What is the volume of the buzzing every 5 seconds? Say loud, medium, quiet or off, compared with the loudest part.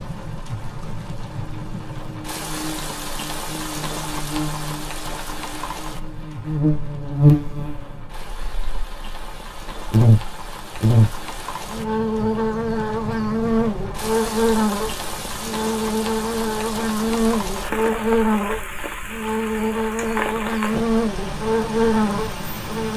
quiet, loud, loud, loud, loud.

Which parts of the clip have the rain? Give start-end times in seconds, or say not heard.
0.0-22.9.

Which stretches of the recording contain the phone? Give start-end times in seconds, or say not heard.
not heard.